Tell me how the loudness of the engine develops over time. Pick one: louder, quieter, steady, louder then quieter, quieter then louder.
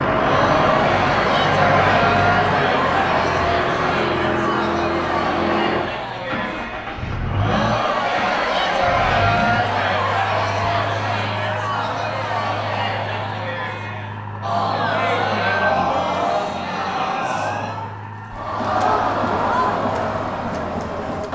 quieter.